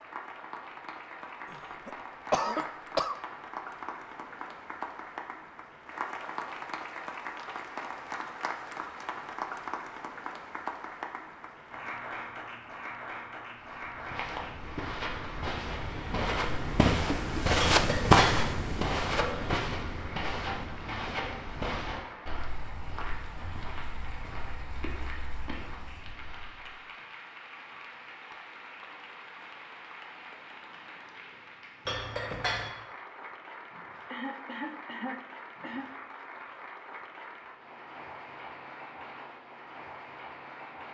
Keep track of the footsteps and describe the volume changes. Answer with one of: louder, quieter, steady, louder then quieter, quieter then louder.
louder then quieter.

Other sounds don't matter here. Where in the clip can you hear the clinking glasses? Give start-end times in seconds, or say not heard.
17.6-18.4, 31.9-32.7.